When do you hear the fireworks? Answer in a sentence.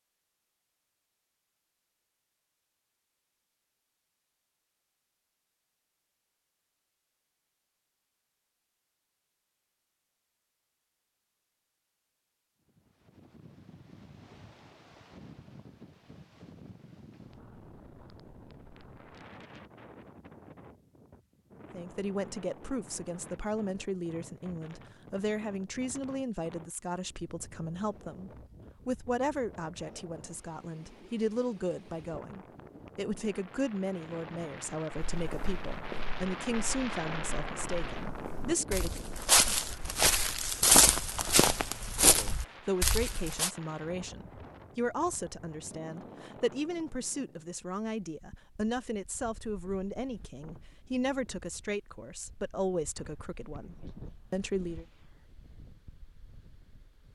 The fireworks can't be heard in this clip.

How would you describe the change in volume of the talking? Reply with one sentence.
The loudness of the talking stays about the same.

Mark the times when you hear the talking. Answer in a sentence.
The talking can be heard from 21.7 to 39.0 s and from 42.0 to 54.9 s.